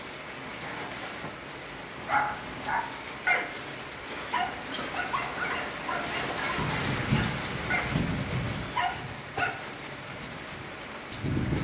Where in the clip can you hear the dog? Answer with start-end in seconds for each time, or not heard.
1.9-9.6.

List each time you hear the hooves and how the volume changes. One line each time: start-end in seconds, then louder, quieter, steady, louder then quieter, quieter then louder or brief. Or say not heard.
6.5-11.6 quieter.